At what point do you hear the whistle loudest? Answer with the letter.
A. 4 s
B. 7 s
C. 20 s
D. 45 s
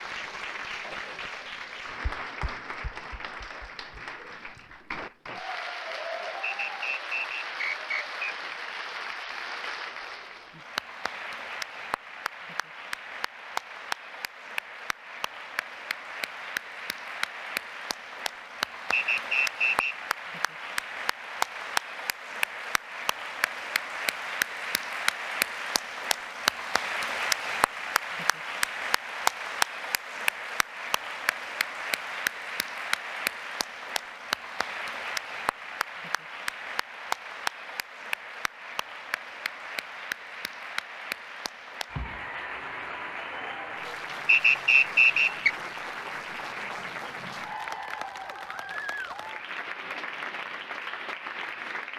D.